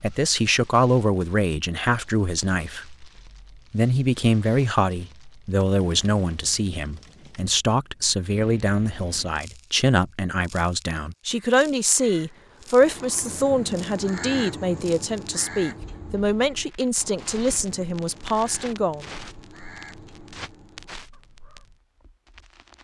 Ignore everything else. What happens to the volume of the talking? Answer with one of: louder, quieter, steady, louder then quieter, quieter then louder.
steady.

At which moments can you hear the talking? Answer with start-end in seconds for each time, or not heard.
0.0-3.0, 3.7-19.1.